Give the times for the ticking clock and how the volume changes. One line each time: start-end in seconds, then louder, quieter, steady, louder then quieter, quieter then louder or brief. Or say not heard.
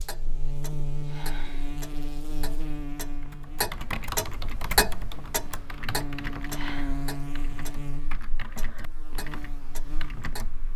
0.0-10.6 louder then quieter.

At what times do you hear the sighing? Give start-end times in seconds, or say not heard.
1.0-1.8, 6.5-7.0.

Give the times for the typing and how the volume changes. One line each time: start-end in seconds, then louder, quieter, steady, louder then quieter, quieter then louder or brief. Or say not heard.
3.2-10.7 quieter.